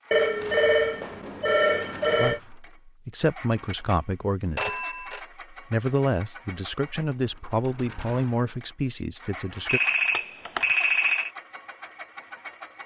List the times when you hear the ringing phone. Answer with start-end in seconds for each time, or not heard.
0.1-2.4, 4.5-5.2, 9.7-11.3.